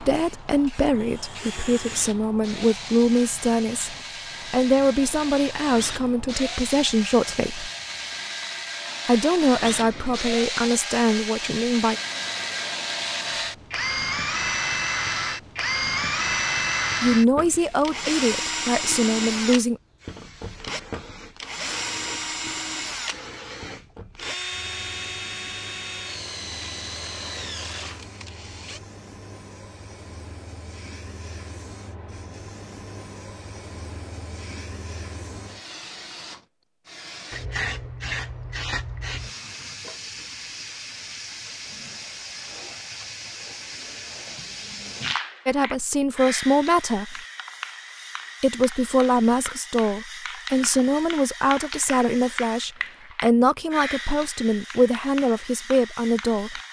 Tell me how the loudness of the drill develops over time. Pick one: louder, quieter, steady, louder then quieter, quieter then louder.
louder then quieter.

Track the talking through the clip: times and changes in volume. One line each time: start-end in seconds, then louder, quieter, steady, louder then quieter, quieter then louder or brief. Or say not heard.
0.0-7.7 steady
9.1-11.9 brief
17.0-19.8 brief
45.5-47.2 brief
48.4-56.6 steady.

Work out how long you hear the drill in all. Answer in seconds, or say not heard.
29 s.